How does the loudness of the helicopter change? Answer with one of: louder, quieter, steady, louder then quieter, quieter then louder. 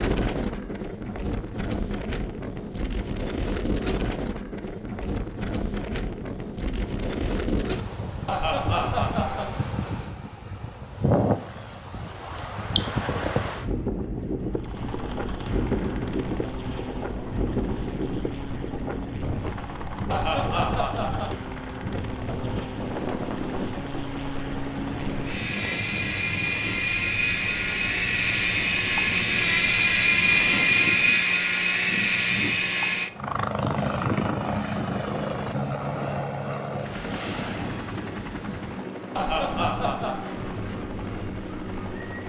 louder then quieter.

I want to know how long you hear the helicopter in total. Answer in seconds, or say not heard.
28 s.